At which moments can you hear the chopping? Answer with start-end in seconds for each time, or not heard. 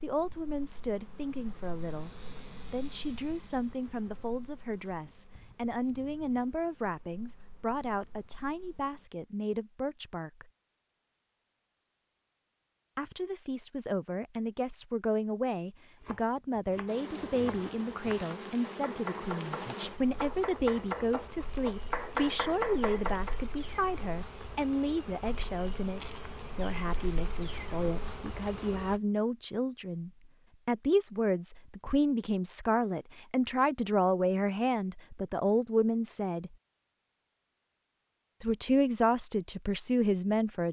15.9-23.4.